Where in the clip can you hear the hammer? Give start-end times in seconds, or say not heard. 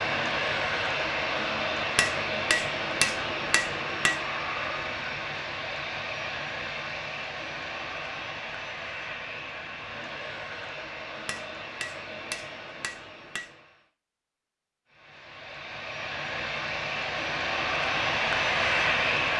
1.9-4.2, 11.2-13.5.